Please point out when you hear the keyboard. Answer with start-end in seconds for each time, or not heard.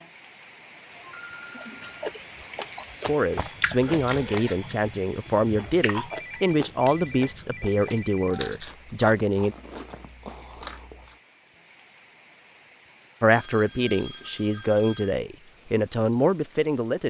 not heard.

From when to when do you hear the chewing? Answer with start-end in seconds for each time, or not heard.
1.6-11.2.